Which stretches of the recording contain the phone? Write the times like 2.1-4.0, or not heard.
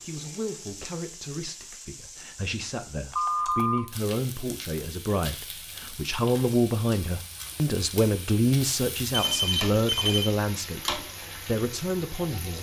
3.1-3.8, 9.1-10.3.